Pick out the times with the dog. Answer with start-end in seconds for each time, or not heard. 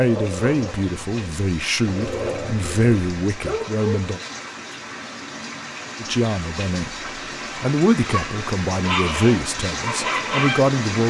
0.0-4.2, 8.1-10.7.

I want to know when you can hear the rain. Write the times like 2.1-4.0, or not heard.
0.0-11.0.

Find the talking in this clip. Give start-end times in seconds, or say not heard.
0.0-4.2, 6.0-11.0.